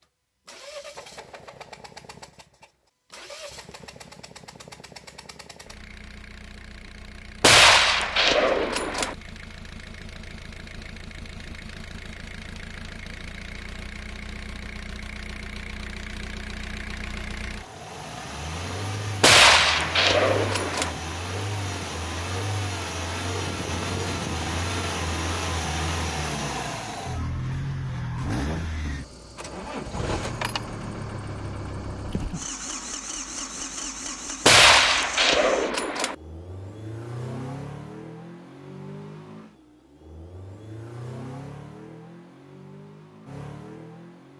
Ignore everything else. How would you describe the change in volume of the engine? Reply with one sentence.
The volume of the engine goes up, then down.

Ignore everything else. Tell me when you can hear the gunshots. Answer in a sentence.
You can hear the gunshots from 7.4 to 9.2 s, from 19.2 to 20.9 s and from 34.5 to 36.1 s.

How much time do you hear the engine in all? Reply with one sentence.
You can hear the engine for 44 seconds altogether.